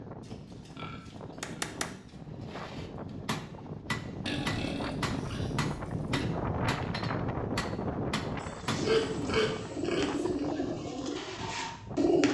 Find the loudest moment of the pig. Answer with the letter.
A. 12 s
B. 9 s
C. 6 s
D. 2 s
B.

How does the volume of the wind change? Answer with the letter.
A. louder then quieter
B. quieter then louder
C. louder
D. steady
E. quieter
A.